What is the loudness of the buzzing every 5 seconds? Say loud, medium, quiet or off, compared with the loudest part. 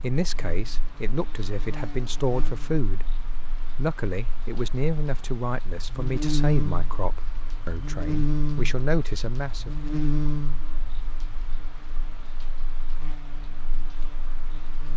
quiet, loud, medium.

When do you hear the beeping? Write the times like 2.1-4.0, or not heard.
not heard.